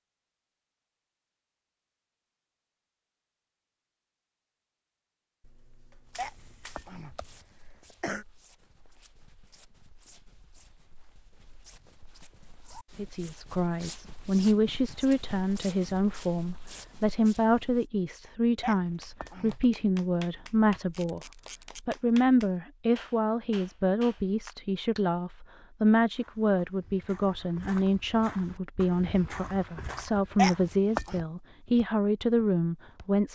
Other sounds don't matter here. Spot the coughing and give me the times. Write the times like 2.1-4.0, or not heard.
6.2-8.2, 18.6-19.6, 30.4-31.2.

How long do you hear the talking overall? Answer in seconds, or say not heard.
20 s.